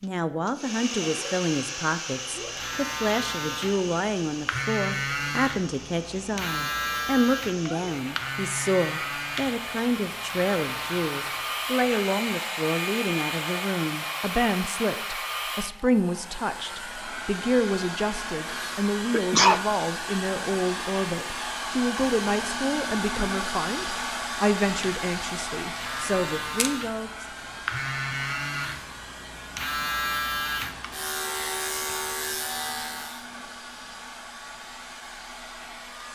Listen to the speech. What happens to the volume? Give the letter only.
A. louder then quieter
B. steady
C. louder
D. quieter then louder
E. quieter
B.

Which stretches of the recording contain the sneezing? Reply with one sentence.
You can hear the sneezing from 18.4 to 19.6 s.